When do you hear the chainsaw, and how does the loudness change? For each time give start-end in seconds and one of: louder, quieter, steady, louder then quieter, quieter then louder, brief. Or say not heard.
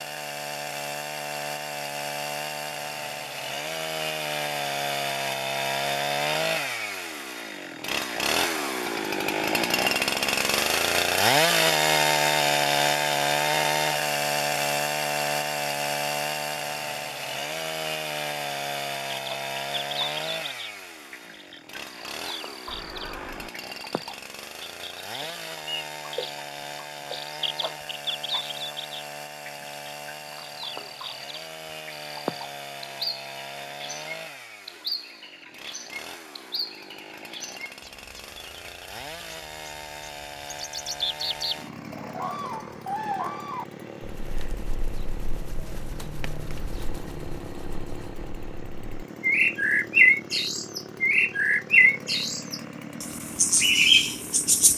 0.0-54.7 quieter.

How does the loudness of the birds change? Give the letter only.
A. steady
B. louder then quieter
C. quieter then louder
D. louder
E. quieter
D.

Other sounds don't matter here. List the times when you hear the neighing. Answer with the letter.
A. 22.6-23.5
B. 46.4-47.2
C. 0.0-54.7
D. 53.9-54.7
A.